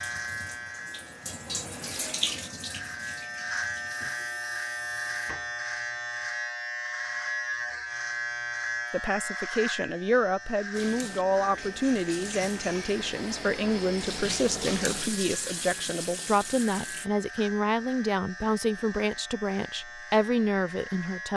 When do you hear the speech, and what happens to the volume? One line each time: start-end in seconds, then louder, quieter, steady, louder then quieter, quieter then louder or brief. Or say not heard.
8.9-21.3 steady.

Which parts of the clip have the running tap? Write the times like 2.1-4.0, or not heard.
0.0-5.3, 10.7-17.1.